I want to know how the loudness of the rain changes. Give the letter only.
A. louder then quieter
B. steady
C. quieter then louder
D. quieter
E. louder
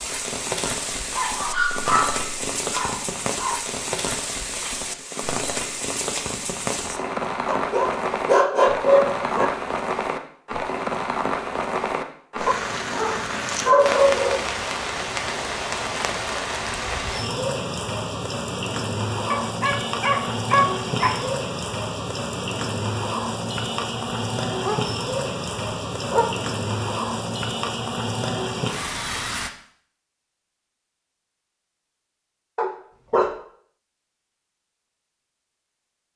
B.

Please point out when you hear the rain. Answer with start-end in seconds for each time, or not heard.
0.0-29.5.